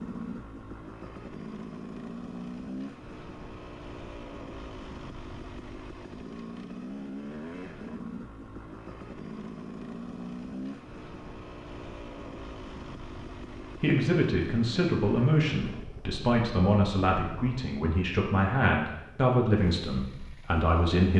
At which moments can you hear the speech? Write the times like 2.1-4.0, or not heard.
13.8-21.1.